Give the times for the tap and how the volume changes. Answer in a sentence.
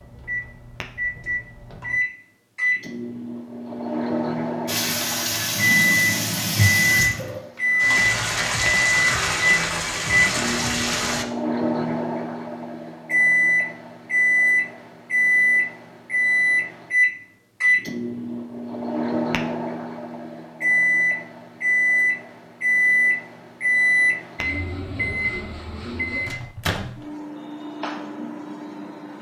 You can hear the tap from 4.7 to 11.2 s, at a steady volume.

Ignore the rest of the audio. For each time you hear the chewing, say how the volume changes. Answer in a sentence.
You can't hear the chewing here.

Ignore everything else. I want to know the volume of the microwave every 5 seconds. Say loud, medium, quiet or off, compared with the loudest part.
medium, loud, loud, loud, loud, medium.